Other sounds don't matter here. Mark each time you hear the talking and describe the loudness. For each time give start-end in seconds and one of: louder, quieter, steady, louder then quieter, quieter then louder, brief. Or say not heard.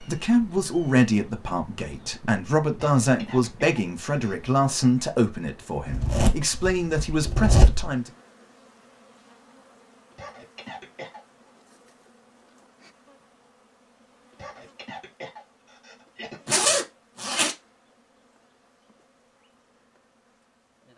0.0-8.1 steady.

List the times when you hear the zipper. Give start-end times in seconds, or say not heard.
5.9-7.9, 16.4-17.6.